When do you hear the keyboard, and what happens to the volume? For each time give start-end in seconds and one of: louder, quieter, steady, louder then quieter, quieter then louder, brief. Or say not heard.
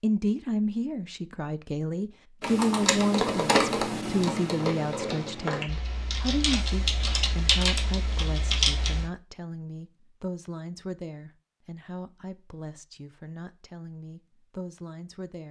2.4-9.1 quieter then louder.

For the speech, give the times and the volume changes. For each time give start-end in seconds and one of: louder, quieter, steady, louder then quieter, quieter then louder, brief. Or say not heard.
0.0-15.4 quieter.